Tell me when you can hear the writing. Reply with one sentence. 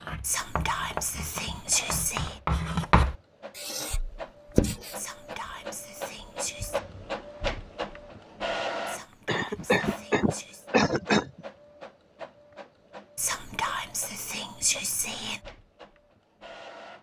You can hear the writing from 0.0 to 5.0 s.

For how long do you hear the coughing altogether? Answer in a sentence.
The coughing can be heard for 2 seconds in total.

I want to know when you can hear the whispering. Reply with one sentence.
You can hear the whispering from 0.2 to 2.4 s, from 5.0 to 6.8 s, from 8.8 to 10.7 s and from 13.2 to 15.4 s.